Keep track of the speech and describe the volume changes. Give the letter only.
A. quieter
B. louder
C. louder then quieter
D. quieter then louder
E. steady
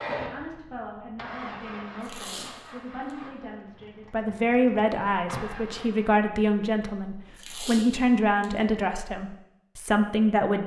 B.